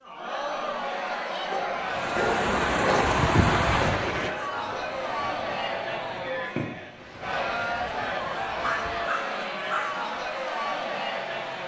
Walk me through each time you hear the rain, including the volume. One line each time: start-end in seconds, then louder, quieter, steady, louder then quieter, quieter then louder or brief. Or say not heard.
1.9-11.6 quieter.